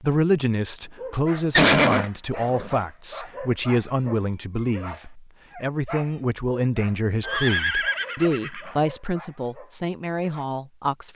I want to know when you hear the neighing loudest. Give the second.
2 s.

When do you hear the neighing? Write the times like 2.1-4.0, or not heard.
1.5-2.8, 7.2-8.8.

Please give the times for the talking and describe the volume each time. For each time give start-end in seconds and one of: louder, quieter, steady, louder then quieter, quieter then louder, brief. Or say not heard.
0.0-11.1 steady.